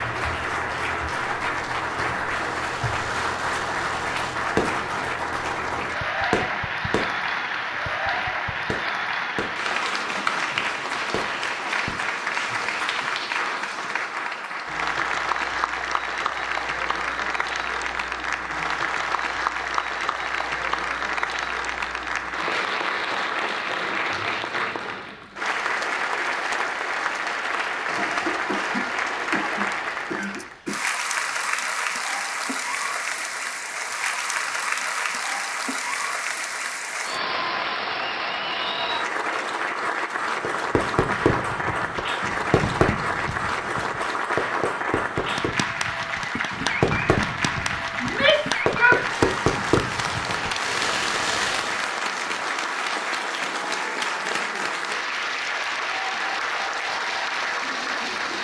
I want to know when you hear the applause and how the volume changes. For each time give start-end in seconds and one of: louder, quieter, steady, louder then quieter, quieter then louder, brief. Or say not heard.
0.0-58.3 steady.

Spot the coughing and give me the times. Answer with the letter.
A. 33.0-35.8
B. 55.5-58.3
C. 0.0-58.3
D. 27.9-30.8
D.